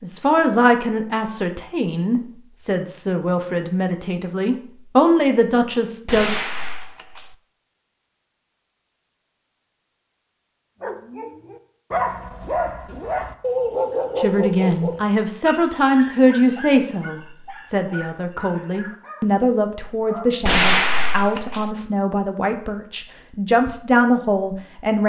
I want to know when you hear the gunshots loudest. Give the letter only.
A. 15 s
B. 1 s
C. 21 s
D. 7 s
C.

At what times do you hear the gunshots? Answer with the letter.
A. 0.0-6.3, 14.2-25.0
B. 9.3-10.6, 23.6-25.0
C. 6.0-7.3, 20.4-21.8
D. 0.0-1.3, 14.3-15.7
C.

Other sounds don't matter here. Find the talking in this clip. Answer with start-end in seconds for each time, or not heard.
0.0-6.3, 14.2-25.0.